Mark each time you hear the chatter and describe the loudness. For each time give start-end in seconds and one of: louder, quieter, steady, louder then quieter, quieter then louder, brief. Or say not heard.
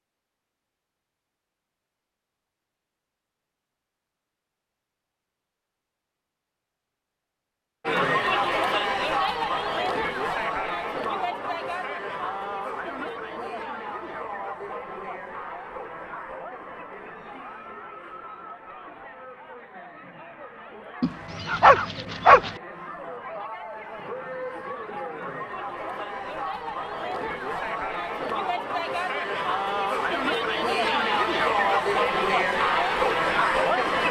7.8-34.0 quieter then louder.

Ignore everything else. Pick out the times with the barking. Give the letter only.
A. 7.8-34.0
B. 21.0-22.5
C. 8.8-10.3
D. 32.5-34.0
B.